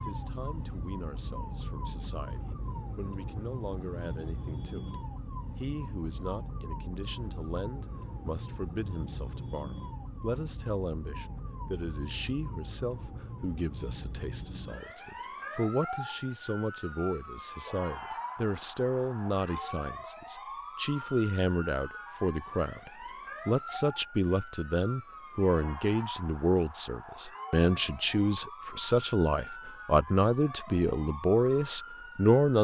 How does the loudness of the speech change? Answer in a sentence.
The volume of the speech goes up.